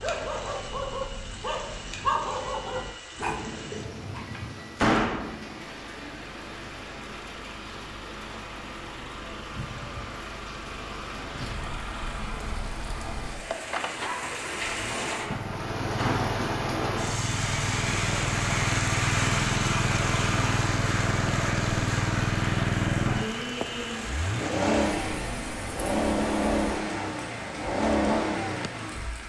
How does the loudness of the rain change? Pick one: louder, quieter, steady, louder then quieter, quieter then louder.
louder then quieter.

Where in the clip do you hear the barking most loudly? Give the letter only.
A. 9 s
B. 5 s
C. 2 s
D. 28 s
C.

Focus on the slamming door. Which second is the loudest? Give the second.
5 s.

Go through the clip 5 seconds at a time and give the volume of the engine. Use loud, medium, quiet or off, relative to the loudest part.
quiet, quiet, medium, loud, loud, loud.